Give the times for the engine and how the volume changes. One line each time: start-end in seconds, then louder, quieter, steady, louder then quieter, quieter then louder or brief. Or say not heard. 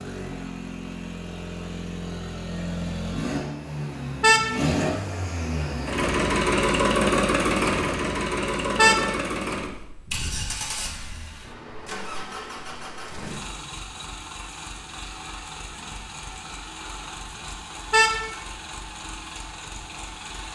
0.0-20.5 louder then quieter.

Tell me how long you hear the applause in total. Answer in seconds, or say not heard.
not heard.